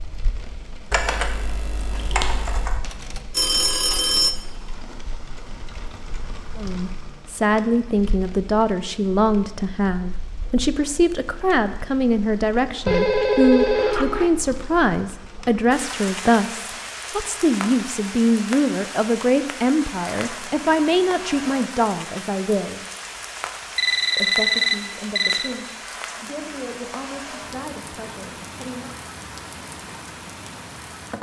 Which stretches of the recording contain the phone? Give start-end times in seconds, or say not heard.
2.8-4.3, 12.8-14.3, 23.8-25.6.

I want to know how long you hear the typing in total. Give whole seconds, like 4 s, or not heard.
2 s.